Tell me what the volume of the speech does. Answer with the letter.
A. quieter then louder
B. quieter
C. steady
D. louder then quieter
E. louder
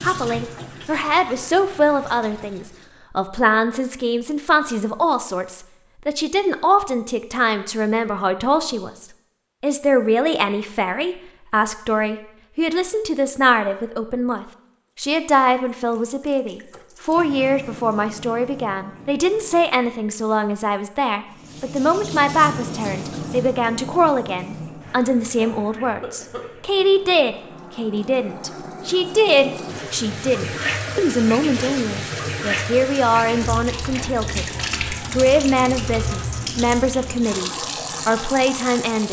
C.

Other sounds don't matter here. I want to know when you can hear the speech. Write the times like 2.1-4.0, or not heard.
0.0-39.0.